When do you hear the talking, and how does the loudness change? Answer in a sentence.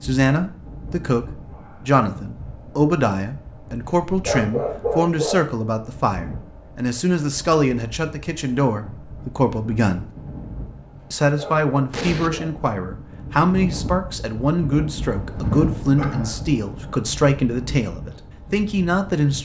You can hear the talking from 0.0 to 10.1 s, at a steady volume; and from 11.1 to 19.3 s, at a steady volume.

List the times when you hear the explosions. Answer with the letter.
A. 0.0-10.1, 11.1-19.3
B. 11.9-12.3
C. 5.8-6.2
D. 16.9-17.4
B.